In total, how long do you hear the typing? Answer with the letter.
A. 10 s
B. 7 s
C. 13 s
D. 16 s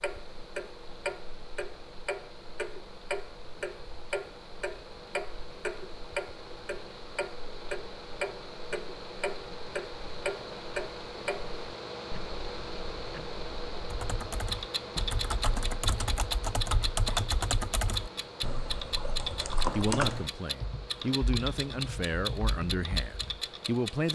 A.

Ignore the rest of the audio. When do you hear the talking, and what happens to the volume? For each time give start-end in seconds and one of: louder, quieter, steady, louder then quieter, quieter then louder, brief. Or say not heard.
19.8-24.0 louder then quieter.